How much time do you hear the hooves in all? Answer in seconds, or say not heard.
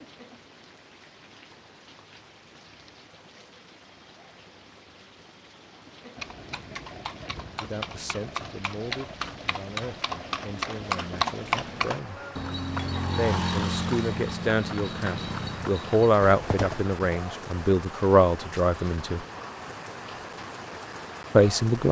11 s.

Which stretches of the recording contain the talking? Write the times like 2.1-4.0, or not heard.
7.6-12.2, 13.2-19.2, 21.3-21.8.